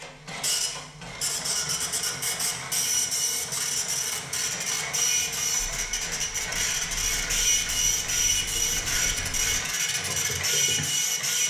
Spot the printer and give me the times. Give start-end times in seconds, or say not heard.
0.0-11.4.